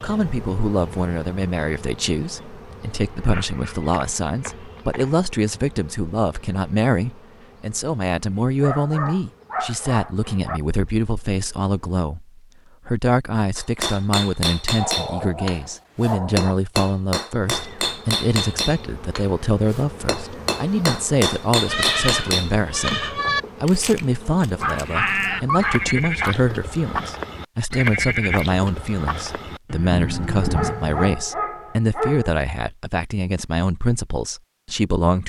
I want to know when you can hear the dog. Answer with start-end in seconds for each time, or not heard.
3.3-5.2, 8.6-10.6, 14.8-16.6, 24.6-26.4, 30.4-32.3.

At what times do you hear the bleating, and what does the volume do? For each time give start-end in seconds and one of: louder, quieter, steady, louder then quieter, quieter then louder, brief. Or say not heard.
21.6-31.2 steady.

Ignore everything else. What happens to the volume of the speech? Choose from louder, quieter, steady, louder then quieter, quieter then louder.
steady.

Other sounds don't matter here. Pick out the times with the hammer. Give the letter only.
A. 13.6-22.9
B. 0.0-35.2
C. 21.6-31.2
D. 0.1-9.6
A.